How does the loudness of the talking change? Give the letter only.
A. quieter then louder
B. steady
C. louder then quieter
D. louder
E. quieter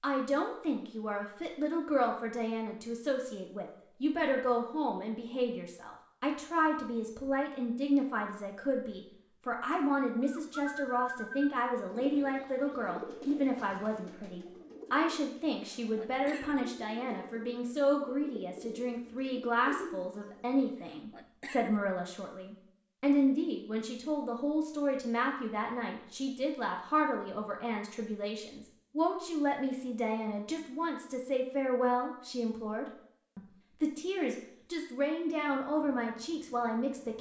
B.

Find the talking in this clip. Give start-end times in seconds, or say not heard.
0.0-37.1.